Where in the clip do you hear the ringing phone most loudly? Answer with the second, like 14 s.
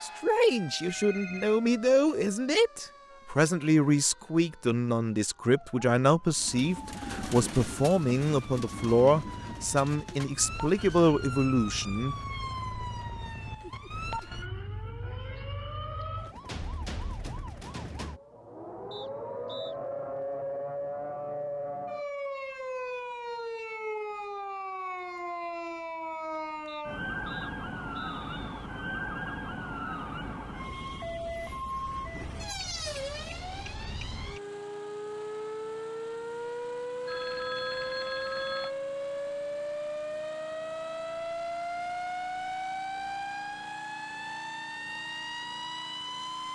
38 s.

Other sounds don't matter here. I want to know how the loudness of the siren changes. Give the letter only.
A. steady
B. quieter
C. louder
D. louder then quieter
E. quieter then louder
C.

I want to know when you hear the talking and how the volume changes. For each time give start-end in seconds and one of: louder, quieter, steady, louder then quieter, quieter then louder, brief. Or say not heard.
0.0-12.2 steady.